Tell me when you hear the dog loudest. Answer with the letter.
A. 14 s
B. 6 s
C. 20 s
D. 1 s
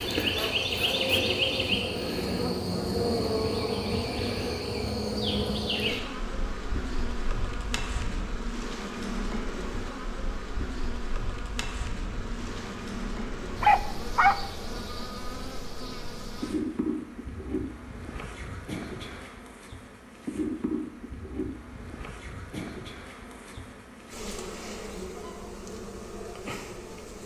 A.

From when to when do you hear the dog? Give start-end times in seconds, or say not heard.
12.1-14.3.